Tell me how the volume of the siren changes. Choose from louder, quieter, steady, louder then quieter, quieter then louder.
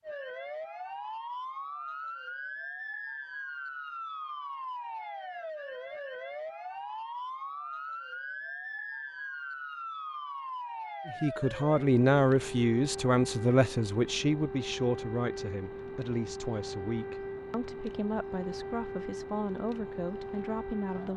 steady.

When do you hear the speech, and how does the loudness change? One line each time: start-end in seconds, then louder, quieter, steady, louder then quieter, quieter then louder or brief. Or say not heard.
11.1-21.1 quieter.